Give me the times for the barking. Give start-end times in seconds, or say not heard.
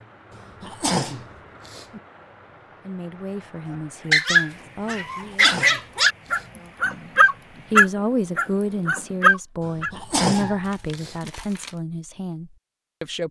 4.1-10.6.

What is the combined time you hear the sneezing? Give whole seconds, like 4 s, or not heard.
5 s.